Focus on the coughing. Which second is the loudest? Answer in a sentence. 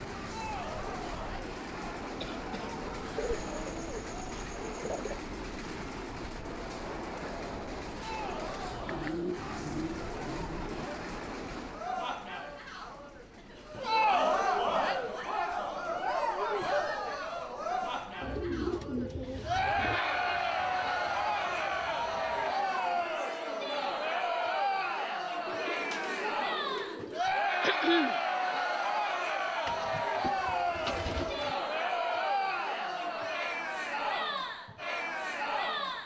The loudest moment of the coughing is at 28 seconds.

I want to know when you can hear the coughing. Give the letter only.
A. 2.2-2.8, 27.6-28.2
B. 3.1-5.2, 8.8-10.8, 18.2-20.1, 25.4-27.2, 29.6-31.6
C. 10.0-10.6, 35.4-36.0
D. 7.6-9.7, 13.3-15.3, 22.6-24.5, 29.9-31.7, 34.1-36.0
A.